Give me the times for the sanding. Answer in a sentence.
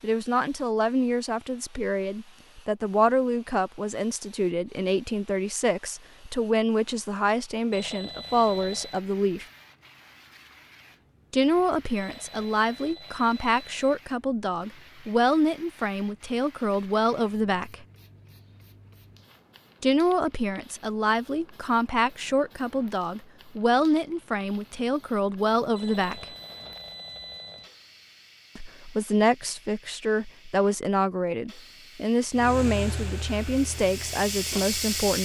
The sanding can't be heard in this clip.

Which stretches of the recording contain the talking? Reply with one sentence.
The talking can be heard from 0.0 to 9.4 s, from 11.3 to 17.9 s, from 19.8 to 26.2 s and from 28.6 to 35.2 s.